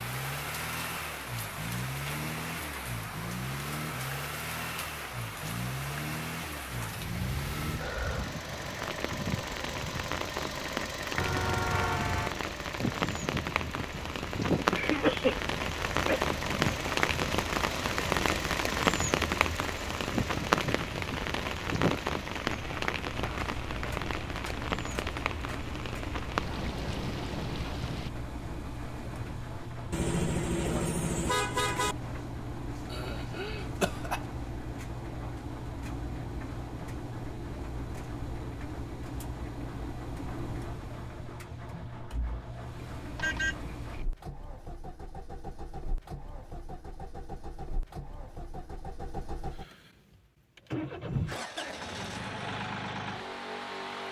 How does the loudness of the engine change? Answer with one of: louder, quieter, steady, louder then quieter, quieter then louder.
steady.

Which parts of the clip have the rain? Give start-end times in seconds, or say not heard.
0.0-28.1.